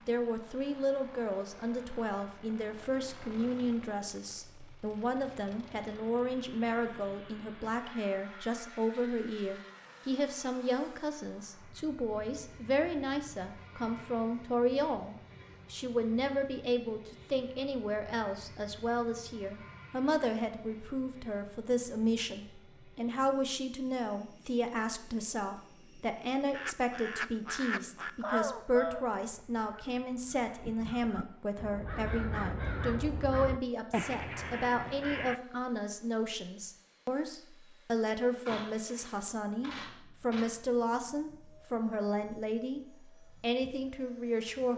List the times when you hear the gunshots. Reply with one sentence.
The gunshots can be heard from 38.5 to 40.5 s.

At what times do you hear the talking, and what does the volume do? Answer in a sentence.
You can hear the talking from 0.1 to 42.8 s, at a steady volume; and briefly from 43.4 to 44.7 s.